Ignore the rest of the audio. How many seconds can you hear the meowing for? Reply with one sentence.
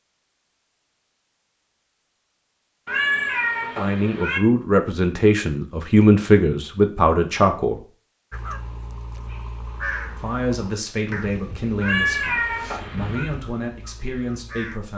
You can hear the meowing for 3 seconds altogether.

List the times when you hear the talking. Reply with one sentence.
The talking can be heard from 3.8 to 7.8 s and from 10.2 to 14.9 s.